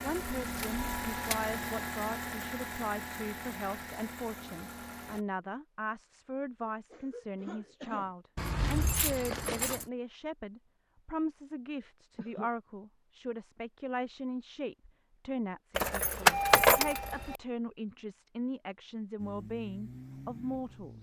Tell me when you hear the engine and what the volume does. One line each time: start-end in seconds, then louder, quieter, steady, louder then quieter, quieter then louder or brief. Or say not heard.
0.0-5.2 quieter
19.1-20.9 brief.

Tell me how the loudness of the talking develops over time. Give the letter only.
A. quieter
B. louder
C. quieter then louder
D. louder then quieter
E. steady
E.